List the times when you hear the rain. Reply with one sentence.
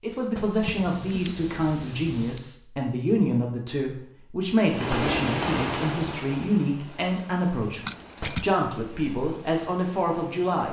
The rain can be heard from 4.7 to 10.6 s.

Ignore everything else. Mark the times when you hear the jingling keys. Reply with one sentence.
The jingling keys can be heard from 0.6 to 2.5 s and from 7.8 to 8.6 s.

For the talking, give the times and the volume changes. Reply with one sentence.
You can hear the talking from 0.0 to 10.6 s, at a steady volume.